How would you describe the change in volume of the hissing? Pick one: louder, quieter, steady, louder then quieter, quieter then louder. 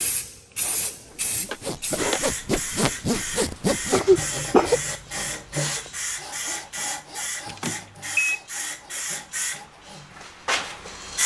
steady.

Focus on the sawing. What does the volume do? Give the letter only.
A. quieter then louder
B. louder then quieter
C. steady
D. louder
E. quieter
E.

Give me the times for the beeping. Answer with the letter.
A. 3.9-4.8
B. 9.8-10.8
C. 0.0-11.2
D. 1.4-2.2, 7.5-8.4
D.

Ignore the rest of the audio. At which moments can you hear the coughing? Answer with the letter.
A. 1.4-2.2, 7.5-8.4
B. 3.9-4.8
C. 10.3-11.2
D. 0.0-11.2
B.